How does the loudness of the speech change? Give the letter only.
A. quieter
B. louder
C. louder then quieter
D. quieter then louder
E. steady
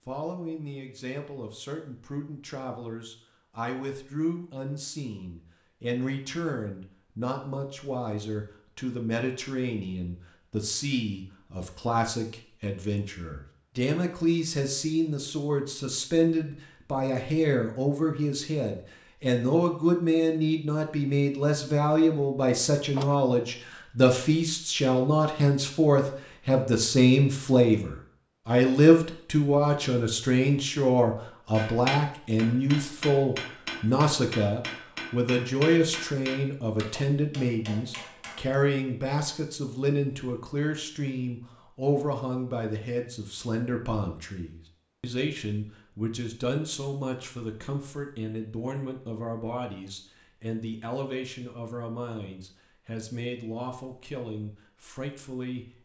C.